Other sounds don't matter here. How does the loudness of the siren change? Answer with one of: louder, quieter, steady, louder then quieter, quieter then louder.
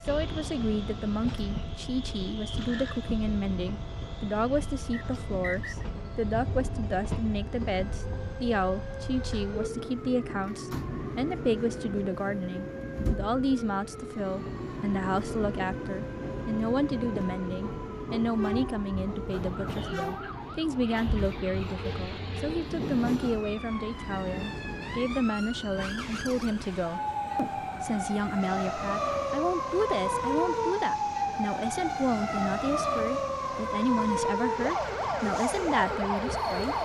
louder.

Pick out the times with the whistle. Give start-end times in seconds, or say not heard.
4.9-5.8.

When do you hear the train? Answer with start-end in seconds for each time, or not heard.
0.0-36.8.